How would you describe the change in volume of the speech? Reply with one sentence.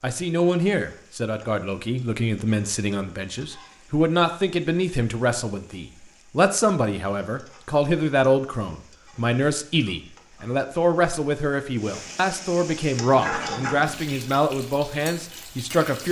The loudness of the speech stays about the same.